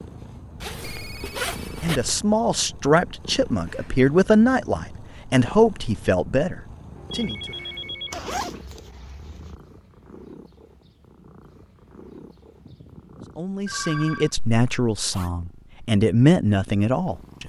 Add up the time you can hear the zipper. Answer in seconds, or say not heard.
4 s.